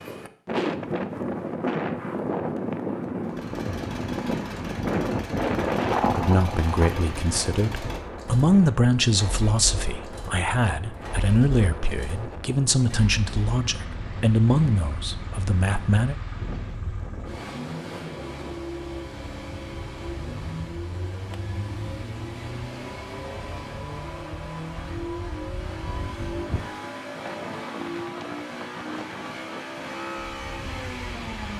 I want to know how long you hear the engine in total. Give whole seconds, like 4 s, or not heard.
28 s.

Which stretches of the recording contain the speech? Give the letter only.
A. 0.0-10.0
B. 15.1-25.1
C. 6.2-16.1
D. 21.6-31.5
C.